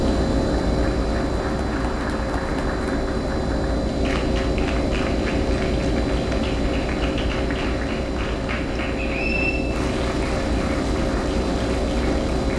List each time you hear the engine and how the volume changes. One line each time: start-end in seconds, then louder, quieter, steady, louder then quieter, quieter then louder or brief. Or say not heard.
0.0-12.5 steady.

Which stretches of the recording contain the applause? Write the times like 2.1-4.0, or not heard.
0.0-12.5.